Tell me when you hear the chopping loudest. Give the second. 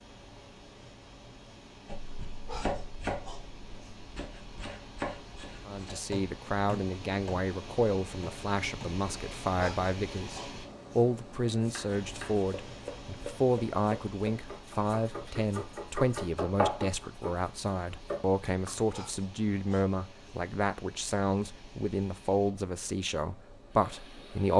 17 s.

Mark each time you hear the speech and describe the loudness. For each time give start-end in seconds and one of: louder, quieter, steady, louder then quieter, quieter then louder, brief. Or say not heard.
5.7-24.5 steady.